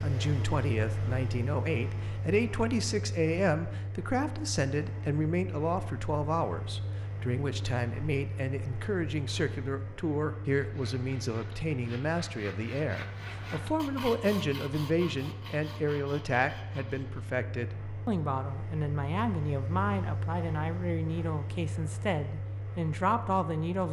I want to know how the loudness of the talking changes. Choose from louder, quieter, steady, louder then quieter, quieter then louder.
steady.